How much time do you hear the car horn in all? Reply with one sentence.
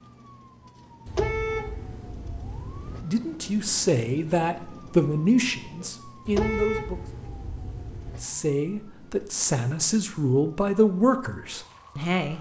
You can hear the car horn for 4 seconds altogether.